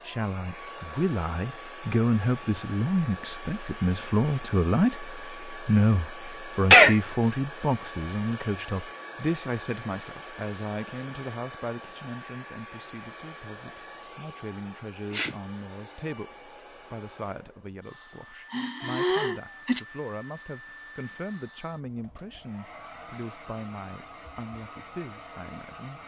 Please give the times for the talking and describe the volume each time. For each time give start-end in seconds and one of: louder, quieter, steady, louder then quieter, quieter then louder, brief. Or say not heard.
0.0-26.0 quieter.